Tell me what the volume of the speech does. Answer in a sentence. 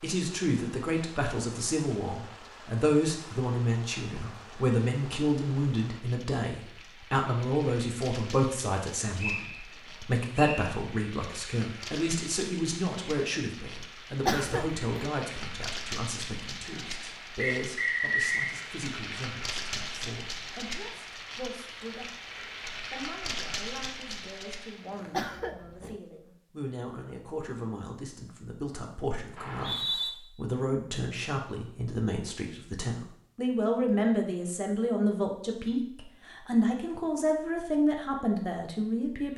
The loudness of the speech goes down, then up.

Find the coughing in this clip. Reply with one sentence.
You can hear the coughing from 14.2 to 14.9 s and from 25.1 to 25.9 s.